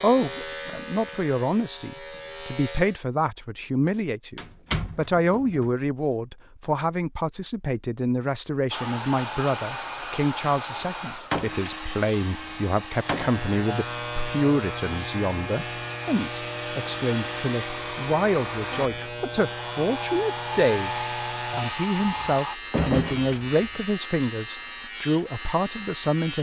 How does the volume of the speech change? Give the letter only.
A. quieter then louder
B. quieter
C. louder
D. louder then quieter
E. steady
E.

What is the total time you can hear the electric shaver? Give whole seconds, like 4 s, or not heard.
16 s.